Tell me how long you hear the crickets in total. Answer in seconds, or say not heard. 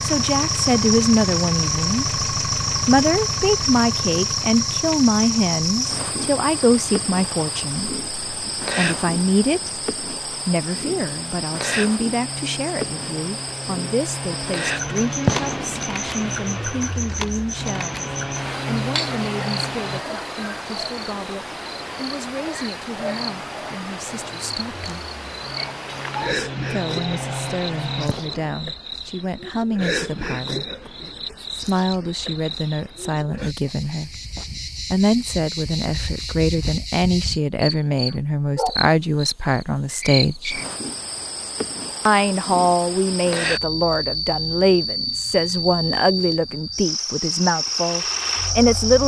49 s.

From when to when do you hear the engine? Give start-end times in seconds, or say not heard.
0.0-20.0, 22.9-28.1, 46.8-49.0.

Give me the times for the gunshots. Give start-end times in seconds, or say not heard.
15.2-15.9, 28.1-28.6.